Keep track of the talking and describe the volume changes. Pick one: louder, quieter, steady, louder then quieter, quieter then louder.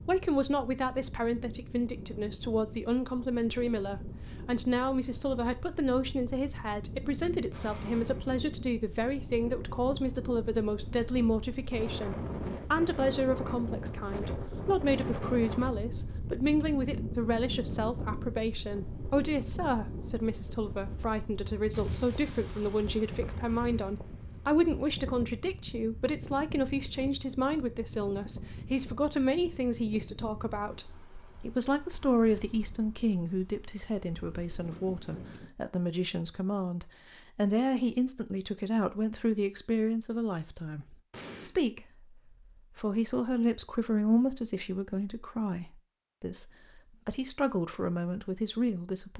steady.